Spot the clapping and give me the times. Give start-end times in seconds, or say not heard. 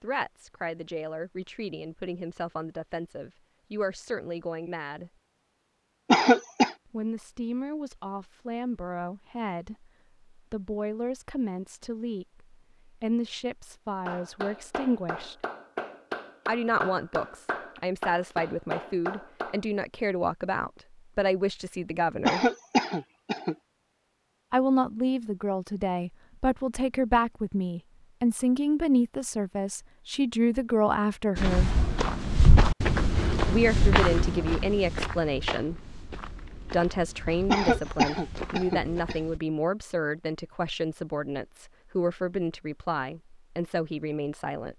14.1-19.6.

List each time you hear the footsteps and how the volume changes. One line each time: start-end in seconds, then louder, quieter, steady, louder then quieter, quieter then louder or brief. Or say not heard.
31.4-39.4 quieter.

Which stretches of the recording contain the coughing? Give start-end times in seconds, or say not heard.
6.1-6.7, 22.2-23.6, 37.5-39.1.